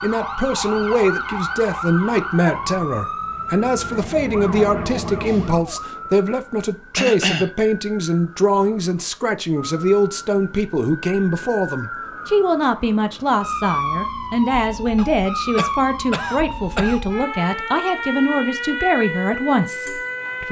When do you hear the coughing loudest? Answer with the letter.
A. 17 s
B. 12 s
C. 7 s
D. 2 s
C.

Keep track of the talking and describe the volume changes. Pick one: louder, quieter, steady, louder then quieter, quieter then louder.
steady.